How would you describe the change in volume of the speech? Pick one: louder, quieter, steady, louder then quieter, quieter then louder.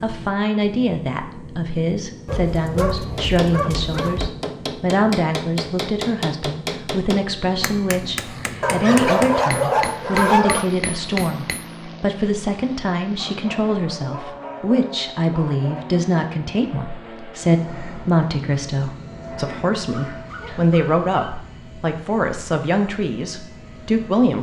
steady.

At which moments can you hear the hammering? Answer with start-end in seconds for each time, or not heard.
3.1-11.7.